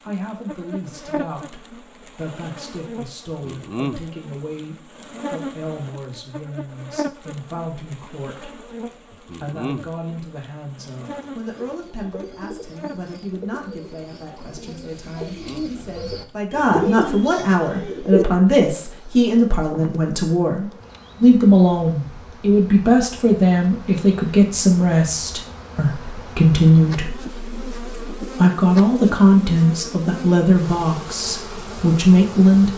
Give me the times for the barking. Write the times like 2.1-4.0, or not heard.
not heard.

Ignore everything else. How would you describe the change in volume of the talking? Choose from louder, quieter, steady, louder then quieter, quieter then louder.
louder.